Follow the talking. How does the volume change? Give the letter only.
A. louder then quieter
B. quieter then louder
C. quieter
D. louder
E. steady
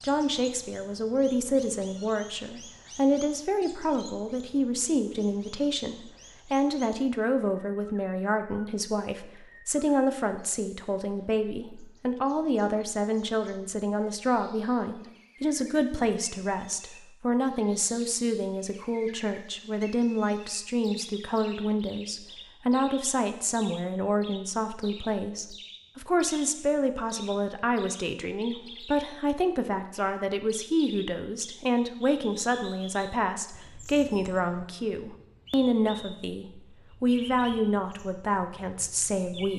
E.